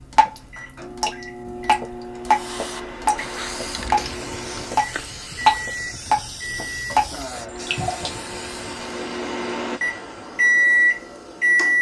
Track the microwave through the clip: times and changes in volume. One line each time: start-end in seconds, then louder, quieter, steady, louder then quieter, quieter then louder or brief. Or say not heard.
0.0-11.7 louder.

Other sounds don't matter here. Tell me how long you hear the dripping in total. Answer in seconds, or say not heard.
8 s.